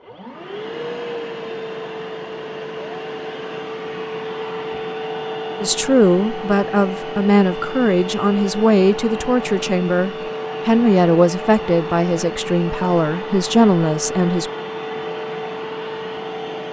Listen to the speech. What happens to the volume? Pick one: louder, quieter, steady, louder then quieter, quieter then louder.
steady.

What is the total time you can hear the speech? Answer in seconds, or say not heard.
9 s.